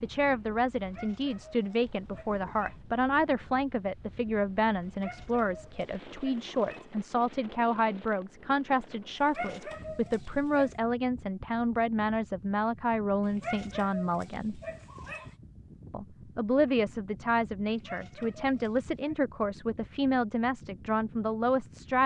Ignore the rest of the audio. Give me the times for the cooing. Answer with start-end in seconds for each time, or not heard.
not heard.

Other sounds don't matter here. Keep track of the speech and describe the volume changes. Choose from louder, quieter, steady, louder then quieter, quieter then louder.
steady.